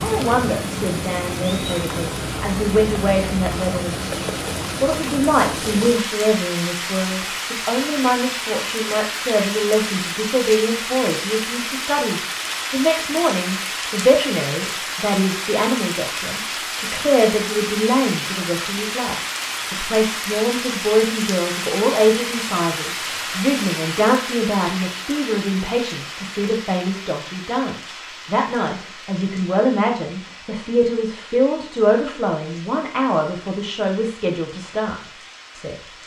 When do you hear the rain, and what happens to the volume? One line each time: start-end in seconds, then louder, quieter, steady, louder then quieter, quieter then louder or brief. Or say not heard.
0.0-36.0 quieter.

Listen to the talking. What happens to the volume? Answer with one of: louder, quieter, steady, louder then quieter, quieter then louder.
steady.